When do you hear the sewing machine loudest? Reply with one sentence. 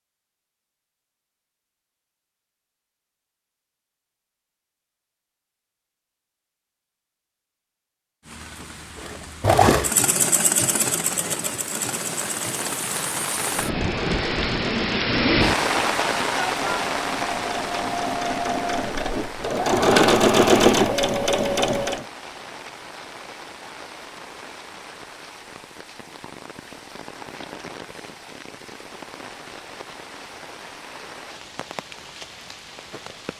The loudest moment of the sewing machine is at 20 seconds.